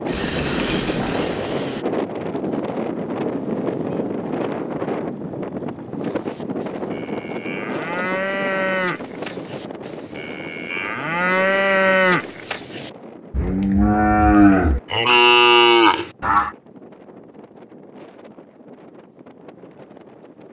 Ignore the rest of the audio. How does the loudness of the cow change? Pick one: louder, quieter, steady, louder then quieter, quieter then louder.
louder.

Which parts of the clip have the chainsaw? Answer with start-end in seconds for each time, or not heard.
0.0-1.9.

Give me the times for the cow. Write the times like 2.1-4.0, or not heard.
6.0-16.5.